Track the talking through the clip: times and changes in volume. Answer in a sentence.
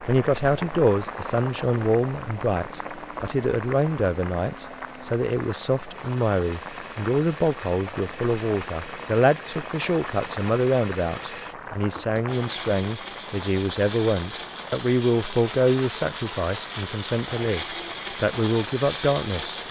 The talking can be heard from 0.1 to 19.6 s, at a steady volume.